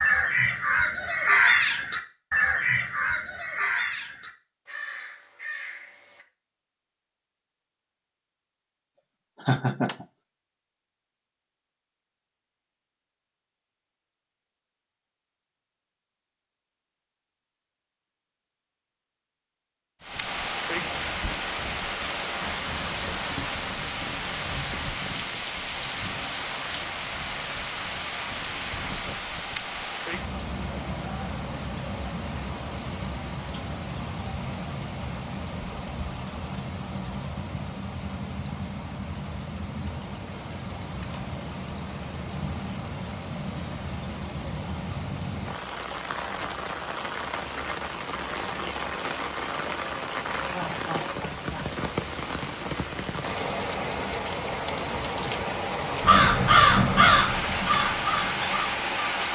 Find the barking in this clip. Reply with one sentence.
The barking can't be heard in this clip.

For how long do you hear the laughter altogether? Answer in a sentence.
The laughter can be heard for 2 seconds in total.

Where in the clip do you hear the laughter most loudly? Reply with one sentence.
The loudest moment of the laughter is at 10 seconds.